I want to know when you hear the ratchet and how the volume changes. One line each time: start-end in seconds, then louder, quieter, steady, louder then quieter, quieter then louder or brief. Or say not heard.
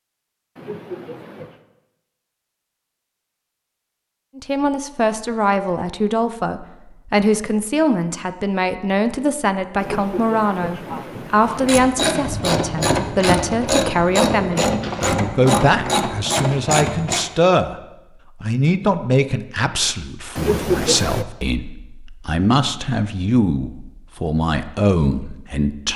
11.4-17.2 steady.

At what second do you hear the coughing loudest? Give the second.
21 s.